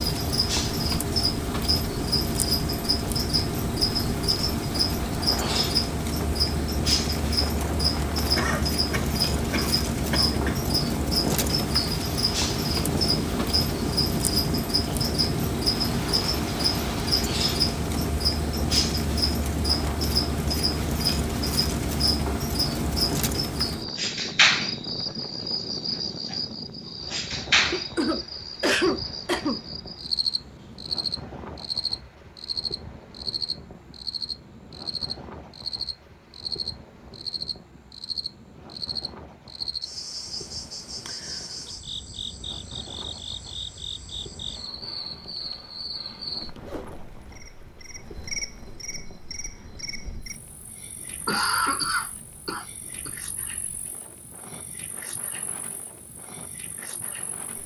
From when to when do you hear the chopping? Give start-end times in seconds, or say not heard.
not heard.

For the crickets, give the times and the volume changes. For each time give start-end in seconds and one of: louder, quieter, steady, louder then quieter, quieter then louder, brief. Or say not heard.
0.0-57.6 quieter.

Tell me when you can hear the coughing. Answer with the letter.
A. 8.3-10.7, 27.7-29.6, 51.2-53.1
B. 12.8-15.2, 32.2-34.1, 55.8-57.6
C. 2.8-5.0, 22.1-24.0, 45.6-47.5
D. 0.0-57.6
A.